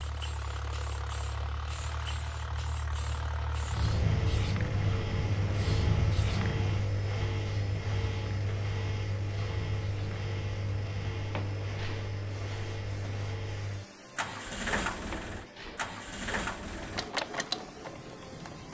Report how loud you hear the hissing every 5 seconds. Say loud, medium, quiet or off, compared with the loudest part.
loud, loud, medium, medium.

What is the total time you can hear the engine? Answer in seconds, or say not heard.
19 s.